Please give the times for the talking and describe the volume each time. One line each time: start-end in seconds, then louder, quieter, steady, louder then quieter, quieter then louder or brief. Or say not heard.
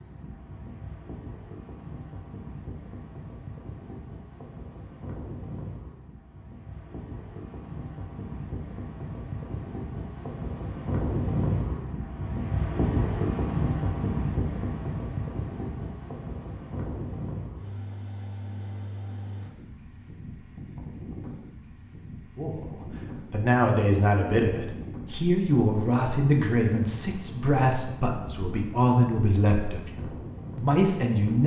22.4-31.4 steady.